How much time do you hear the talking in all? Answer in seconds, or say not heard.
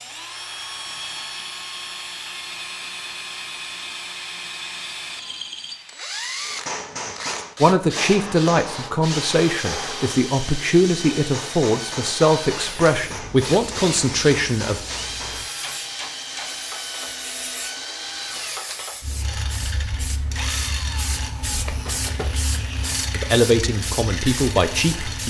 9 s.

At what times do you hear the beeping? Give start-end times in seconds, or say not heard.
not heard.